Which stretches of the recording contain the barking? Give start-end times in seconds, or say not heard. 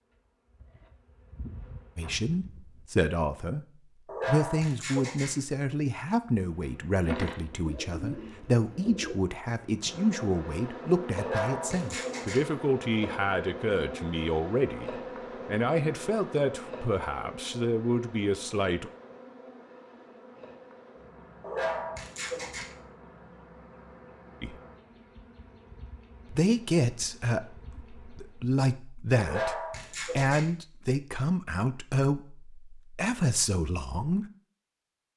4.0-5.4, 11.2-12.5, 21.4-22.8, 29.2-30.5.